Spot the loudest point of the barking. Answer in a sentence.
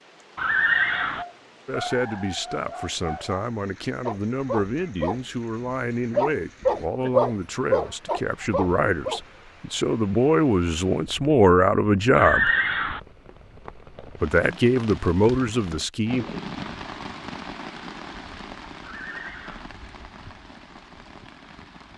The loudest moment of the barking is at 7 seconds.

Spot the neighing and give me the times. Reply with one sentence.
You can hear the neighing from 0.3 to 1.2 s, from 12.2 to 13.0 s and from 18.8 to 19.7 s.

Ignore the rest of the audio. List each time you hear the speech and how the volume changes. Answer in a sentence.
You can hear the speech from 1.6 to 12.5 s, getting louder; and briefly from 14.2 to 16.2 s.